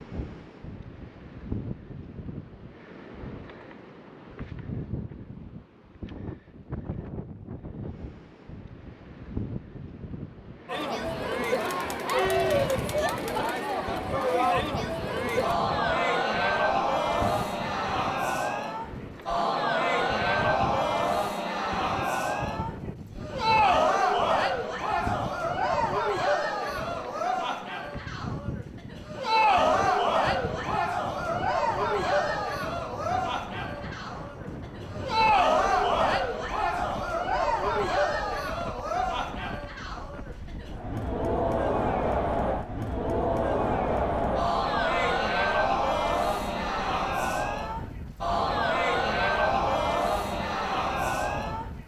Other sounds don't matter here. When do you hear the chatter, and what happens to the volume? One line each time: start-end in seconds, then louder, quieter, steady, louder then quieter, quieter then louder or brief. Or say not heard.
10.7-51.8 steady.